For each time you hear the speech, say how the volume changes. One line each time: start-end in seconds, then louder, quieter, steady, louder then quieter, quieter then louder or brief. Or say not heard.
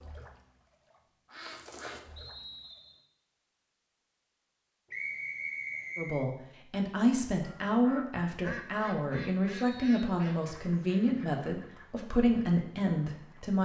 6.0-13.6 steady.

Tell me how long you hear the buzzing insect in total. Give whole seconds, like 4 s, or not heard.
not heard.